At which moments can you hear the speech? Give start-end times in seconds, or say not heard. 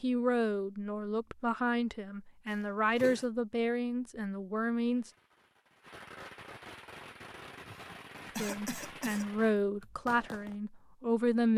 0.0-5.1, 8.2-11.5.